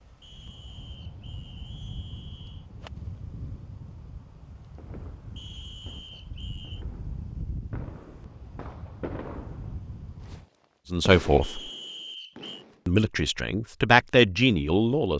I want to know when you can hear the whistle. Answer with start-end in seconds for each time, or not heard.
0.2-2.7, 5.3-6.8, 11.4-12.7.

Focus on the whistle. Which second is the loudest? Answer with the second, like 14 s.
12 s.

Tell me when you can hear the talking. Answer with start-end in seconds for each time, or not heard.
10.9-11.6, 12.8-15.1.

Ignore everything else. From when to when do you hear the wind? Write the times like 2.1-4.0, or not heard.
0.0-10.4.